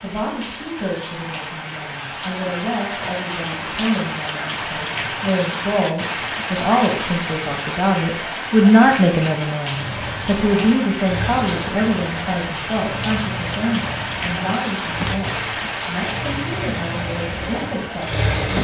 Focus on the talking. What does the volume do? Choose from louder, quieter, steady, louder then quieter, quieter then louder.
louder then quieter.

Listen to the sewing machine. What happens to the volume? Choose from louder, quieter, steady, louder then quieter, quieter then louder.
steady.